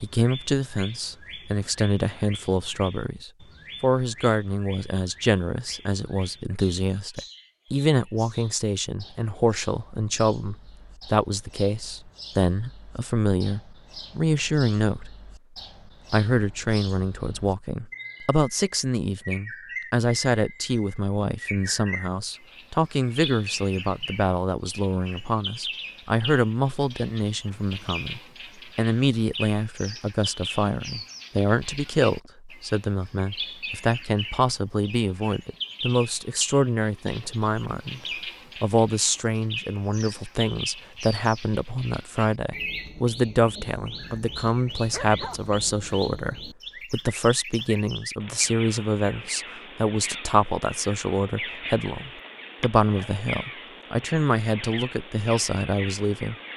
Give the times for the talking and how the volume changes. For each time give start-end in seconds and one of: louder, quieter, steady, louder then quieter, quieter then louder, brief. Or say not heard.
0.0-15.3 steady
16.1-38.0 steady
38.6-56.4 steady.